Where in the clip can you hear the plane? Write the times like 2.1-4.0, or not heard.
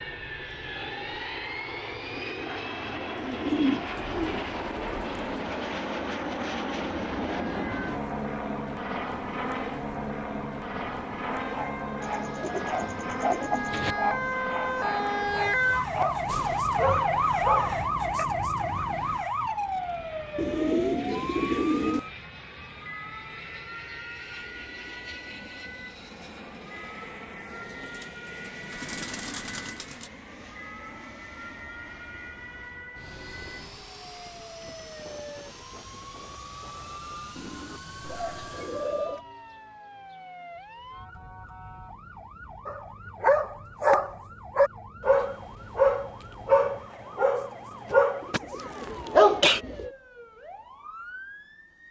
0.0-39.1.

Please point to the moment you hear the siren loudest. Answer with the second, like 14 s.
17 s.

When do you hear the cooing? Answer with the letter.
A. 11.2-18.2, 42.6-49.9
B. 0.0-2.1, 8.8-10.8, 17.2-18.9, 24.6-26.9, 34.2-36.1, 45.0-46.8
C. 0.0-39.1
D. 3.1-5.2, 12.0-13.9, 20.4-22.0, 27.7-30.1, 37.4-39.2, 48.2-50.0
D.